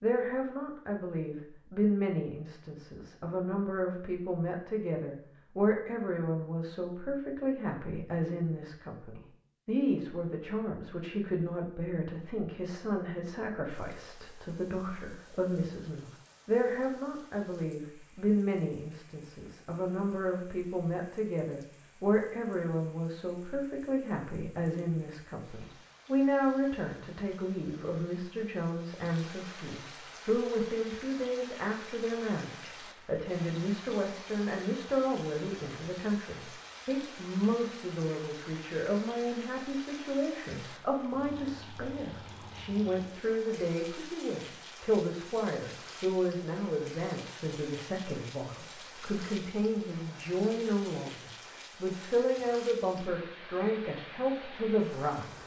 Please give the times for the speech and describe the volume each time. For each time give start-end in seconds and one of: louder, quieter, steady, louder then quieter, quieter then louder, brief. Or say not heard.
0.0-55.4 steady.